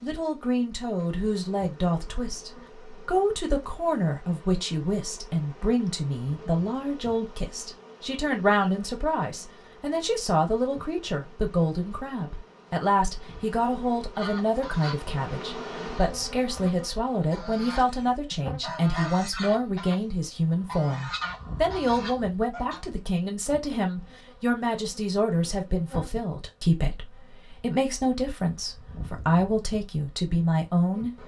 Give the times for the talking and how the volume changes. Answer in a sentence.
The talking can be heard from 0.0 to 31.1 s, at a steady volume.